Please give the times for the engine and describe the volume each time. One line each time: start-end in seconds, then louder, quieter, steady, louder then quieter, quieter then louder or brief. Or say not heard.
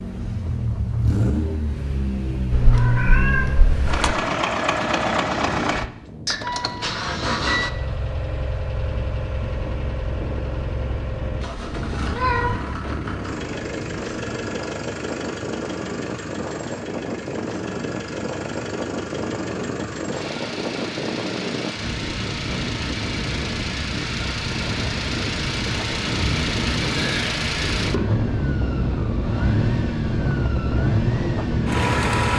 0.0-32.3 quieter then louder.